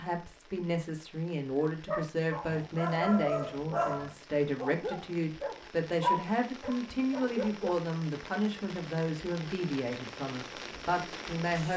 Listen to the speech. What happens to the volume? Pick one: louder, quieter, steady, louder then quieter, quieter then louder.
steady.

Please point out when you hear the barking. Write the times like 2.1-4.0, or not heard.
1.9-7.8.